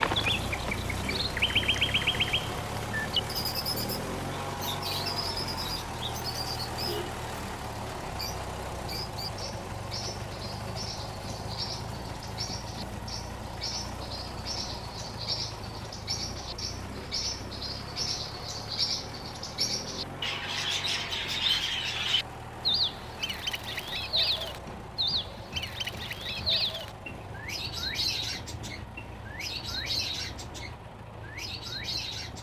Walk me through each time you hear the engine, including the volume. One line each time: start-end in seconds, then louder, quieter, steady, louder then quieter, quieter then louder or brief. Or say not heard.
0.0-32.3 quieter.